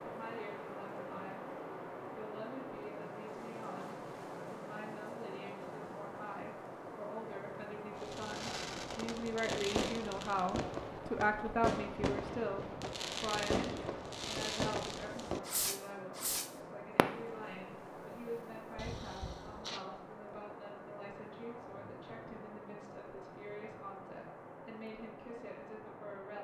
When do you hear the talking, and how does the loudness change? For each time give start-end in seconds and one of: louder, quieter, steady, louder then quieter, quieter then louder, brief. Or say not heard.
0.0-1.4 brief
2.1-26.3 louder then quieter.